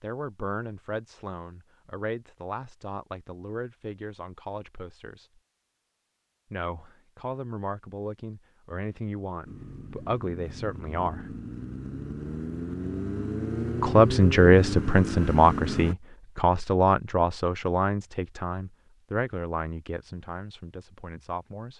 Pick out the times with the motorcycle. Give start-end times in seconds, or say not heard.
9.4-15.9.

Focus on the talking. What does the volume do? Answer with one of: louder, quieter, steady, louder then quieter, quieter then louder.
louder then quieter.